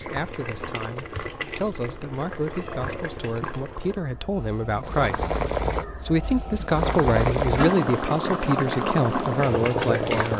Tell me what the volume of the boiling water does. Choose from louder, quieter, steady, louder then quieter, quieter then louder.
louder.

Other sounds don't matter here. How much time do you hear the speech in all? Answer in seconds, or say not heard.
10 s.